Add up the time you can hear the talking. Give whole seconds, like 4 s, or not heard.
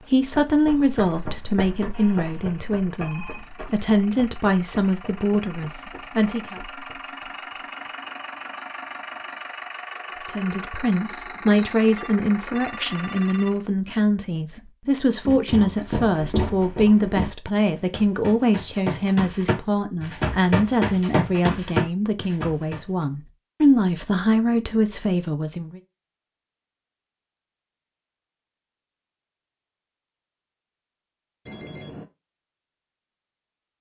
22 s.